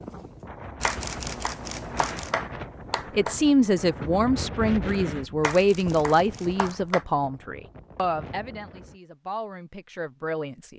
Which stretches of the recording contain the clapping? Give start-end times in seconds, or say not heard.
0.8-3.4, 5.4-7.0.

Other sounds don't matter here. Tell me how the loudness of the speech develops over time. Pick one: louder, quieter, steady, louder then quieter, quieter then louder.
quieter.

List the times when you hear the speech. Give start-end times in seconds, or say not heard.
3.1-10.7.